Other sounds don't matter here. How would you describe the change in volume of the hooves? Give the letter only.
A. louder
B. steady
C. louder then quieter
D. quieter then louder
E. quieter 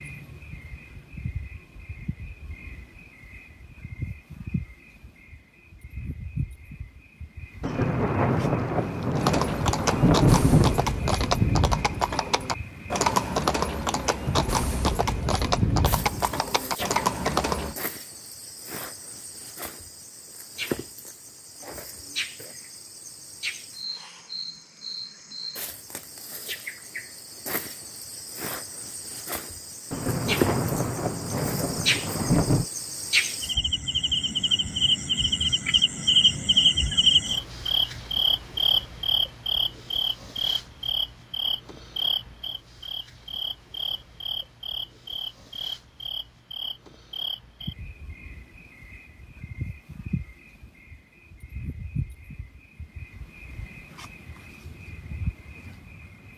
B.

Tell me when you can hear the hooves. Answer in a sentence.
You can hear the hooves from 9.2 to 17.8 s.